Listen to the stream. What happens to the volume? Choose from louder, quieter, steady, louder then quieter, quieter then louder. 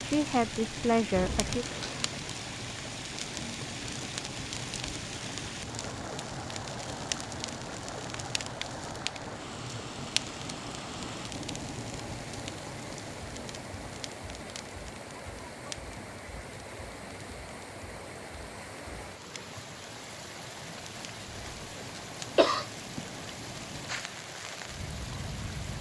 steady.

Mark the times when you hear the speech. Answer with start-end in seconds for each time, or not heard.
0.0-1.6.